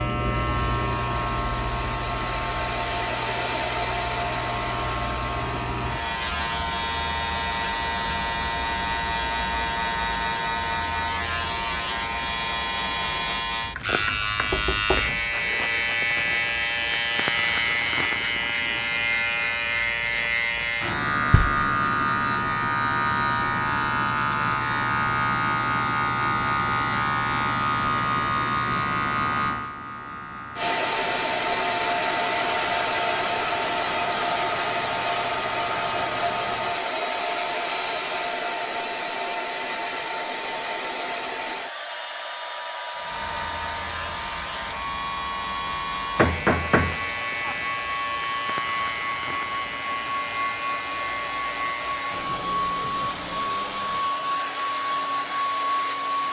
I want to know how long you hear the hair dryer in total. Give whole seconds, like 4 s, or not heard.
39 s.